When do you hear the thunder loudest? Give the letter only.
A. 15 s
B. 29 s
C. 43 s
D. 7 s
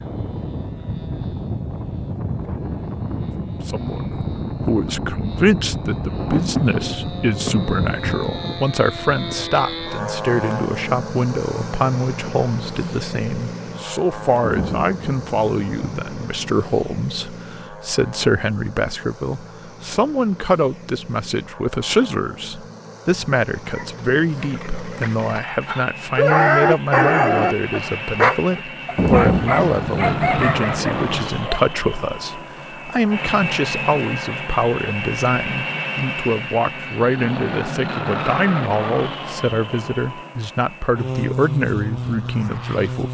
B.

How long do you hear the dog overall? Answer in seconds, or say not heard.
8 s.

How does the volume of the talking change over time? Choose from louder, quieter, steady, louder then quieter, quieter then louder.
steady.